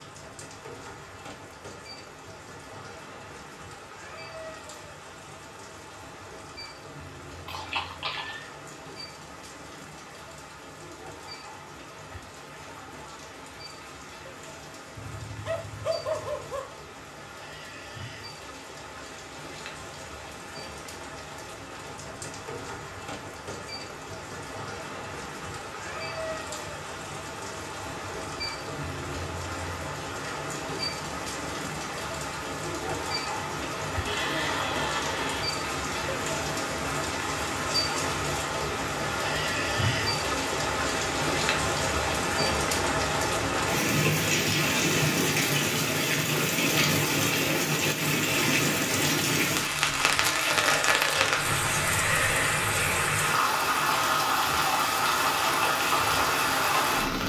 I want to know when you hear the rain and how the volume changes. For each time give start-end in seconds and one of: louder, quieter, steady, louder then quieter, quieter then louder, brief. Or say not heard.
0.0-57.2 louder.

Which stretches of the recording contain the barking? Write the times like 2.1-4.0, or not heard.
14.9-16.6.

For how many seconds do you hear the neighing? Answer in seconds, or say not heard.
4 s.